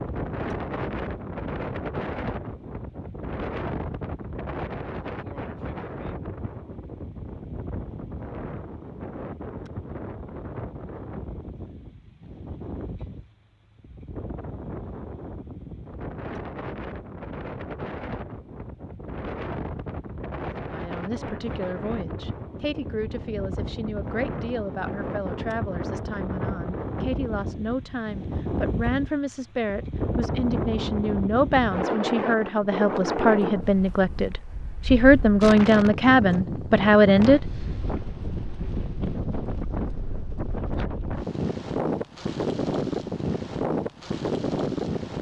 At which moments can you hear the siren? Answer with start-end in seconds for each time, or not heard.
not heard.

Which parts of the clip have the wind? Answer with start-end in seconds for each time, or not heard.
0.0-45.1.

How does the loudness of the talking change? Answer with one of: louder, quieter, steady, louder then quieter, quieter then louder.
louder.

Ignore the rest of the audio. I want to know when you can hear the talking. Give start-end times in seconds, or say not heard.
20.6-37.4.